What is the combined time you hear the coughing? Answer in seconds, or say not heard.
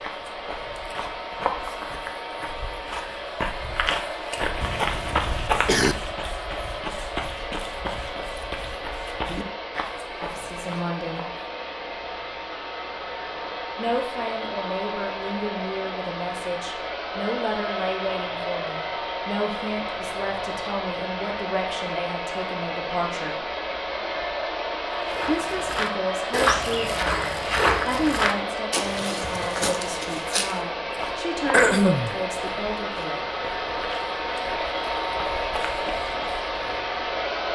2 s.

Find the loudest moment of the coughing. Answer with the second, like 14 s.
32 s.